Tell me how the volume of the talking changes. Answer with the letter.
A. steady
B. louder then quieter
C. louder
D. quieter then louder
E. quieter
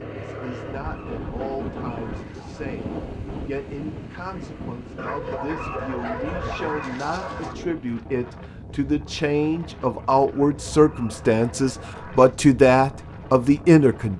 C.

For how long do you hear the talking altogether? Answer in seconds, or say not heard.
14 s.